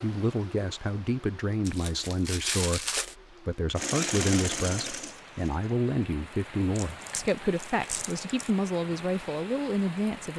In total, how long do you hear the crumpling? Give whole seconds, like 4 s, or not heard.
3 s.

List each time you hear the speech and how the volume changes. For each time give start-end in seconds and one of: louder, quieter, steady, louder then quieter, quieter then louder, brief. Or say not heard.
0.0-10.3 steady.